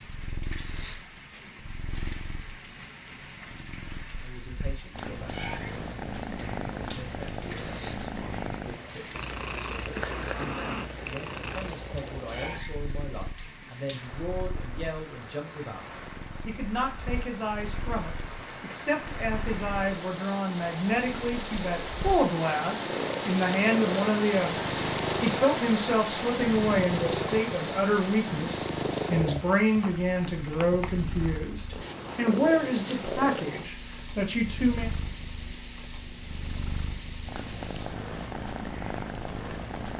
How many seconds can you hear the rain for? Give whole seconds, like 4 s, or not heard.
40 s.